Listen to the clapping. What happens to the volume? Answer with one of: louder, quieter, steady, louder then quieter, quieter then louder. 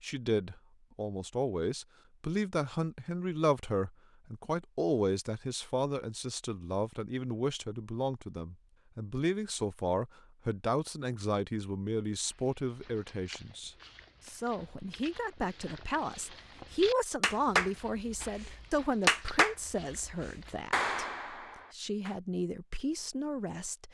louder then quieter.